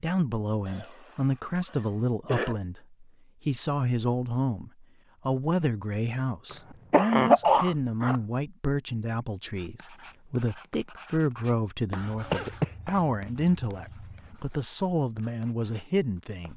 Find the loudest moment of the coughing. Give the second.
7 s.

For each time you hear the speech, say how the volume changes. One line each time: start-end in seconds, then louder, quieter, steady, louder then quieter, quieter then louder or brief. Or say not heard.
0.0-16.5 steady.